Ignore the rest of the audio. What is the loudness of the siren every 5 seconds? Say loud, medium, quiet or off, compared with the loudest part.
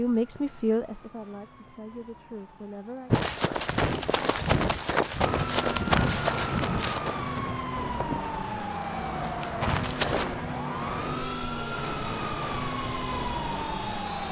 quiet, loud, loud.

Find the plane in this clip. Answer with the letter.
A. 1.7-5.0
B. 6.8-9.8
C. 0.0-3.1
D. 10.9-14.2
D.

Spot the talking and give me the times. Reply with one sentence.
The talking can be heard from 0.0 to 3.1 s.